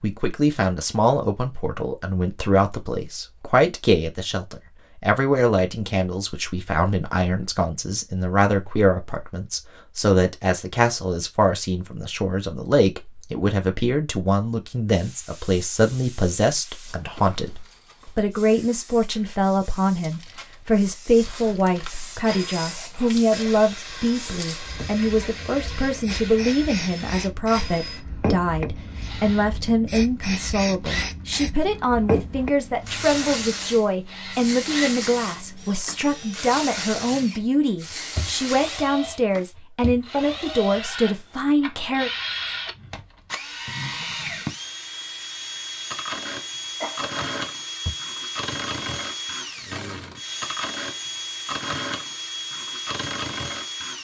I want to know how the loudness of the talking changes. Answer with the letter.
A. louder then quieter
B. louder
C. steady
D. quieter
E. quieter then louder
C.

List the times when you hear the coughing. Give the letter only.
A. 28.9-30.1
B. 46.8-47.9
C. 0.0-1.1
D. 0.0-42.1
B.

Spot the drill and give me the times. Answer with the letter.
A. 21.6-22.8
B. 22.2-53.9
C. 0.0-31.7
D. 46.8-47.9
B.